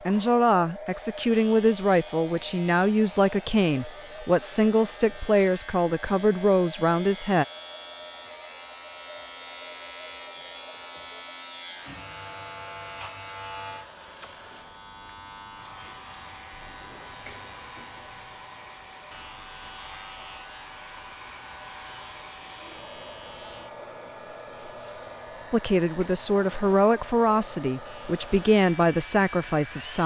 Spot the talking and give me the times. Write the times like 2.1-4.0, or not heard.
0.1-7.5, 25.5-30.0.